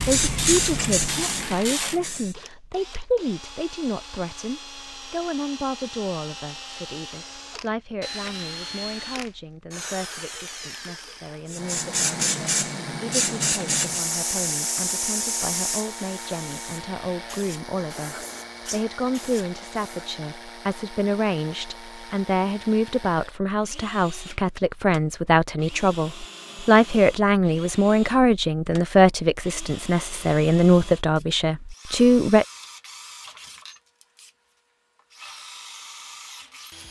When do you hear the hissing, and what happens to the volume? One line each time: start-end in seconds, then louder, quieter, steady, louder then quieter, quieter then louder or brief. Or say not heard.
0.0-2.4 brief
11.4-20.1 quieter.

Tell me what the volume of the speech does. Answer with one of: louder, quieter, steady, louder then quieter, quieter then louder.
quieter then louder.